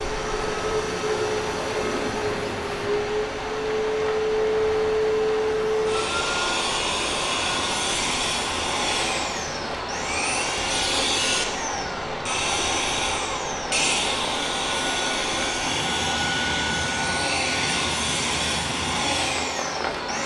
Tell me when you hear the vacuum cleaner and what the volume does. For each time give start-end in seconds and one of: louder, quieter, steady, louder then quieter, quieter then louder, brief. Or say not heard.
0.0-20.2 steady.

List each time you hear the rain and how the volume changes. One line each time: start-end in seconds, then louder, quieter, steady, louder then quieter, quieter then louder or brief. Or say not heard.
0.0-20.2 steady.